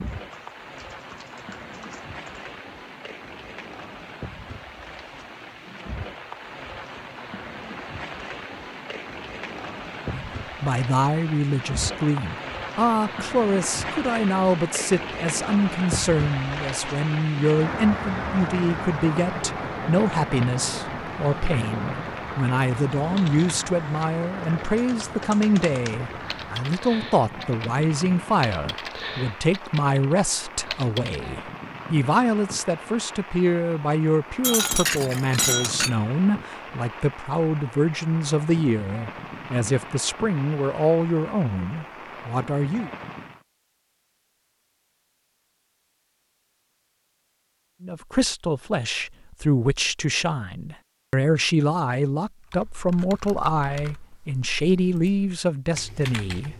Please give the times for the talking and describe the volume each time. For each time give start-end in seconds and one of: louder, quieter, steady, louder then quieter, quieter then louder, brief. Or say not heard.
10.1-42.9 steady
47.8-56.5 steady.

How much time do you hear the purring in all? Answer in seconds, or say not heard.
not heard.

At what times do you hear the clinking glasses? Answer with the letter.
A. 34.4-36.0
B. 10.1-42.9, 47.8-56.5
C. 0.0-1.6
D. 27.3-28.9
A.